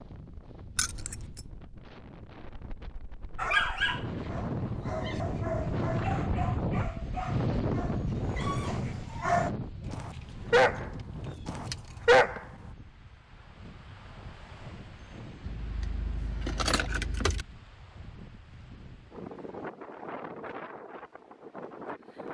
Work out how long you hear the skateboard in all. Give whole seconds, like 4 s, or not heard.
not heard.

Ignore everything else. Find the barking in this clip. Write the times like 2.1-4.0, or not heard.
3.4-12.7.